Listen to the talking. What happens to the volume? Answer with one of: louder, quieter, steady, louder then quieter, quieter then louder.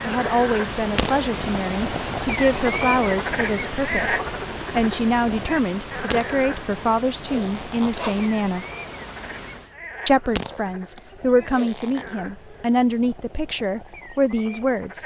steady.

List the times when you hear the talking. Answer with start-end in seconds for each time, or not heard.
0.0-8.7, 10.1-15.0.